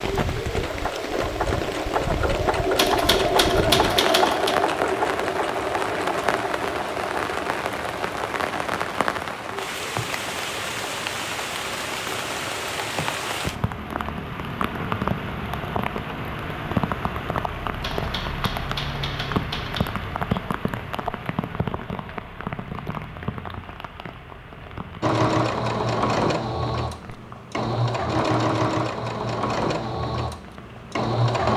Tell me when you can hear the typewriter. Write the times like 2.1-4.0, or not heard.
2.8-4.5, 17.8-19.8.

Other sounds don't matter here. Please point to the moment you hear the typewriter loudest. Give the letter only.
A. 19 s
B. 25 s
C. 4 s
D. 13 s
C.